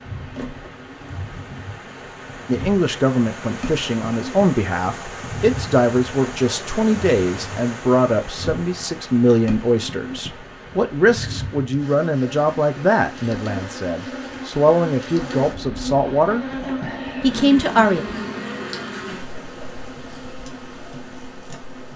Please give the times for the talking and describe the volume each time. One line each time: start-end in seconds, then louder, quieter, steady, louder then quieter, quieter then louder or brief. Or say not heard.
2.5-18.1 steady.